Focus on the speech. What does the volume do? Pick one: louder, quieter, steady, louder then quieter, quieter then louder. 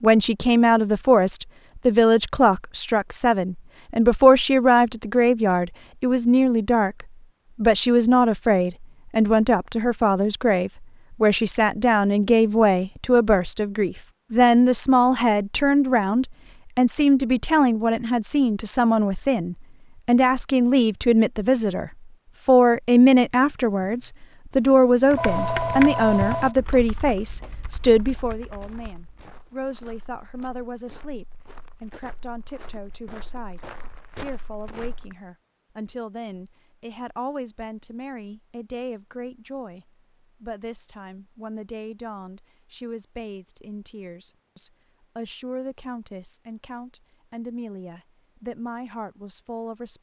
quieter.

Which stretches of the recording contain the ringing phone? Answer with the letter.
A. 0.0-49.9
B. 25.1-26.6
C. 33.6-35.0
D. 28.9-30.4
B.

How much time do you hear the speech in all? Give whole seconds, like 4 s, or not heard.
50 s.